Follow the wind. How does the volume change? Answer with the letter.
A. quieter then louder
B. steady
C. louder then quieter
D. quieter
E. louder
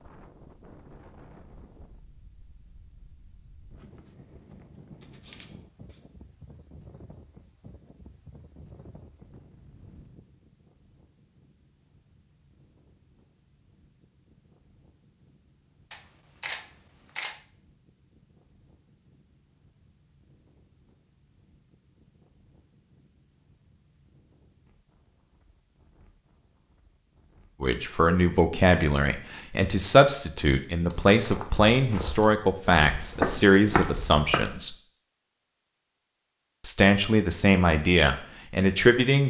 D.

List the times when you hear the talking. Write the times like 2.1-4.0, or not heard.
27.6-34.7, 36.6-39.2.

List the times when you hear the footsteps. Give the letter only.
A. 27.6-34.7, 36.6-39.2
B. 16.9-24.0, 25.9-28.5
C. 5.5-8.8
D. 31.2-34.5
D.